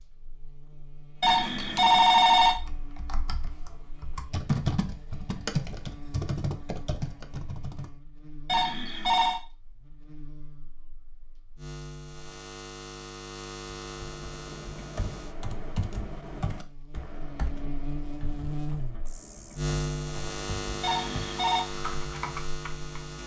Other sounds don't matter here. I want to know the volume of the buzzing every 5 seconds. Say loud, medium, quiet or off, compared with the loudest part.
quiet, quiet, medium, loud, loud.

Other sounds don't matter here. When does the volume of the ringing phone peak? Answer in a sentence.
The loudest moment of the ringing phone is at 2 seconds.